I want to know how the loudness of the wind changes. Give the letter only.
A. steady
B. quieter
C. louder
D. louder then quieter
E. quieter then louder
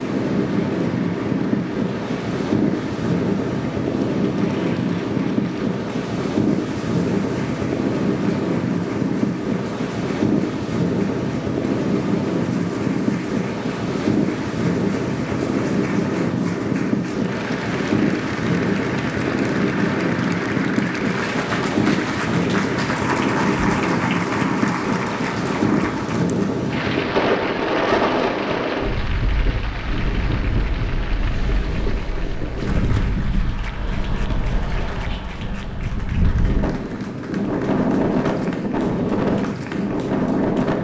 A.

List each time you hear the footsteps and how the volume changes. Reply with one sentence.
The footsteps can't be heard in this clip.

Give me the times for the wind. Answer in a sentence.
You can hear the wind from 0.0 to 40.7 s.